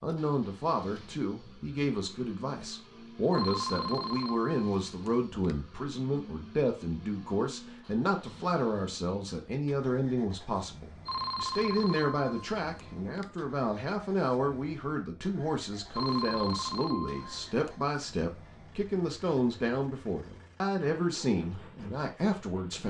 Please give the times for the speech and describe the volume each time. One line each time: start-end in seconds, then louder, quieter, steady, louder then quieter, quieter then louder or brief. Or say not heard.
0.0-22.8 steady.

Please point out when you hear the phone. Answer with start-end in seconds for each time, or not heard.
3.3-5.7, 11.1-13.3, 15.9-17.9.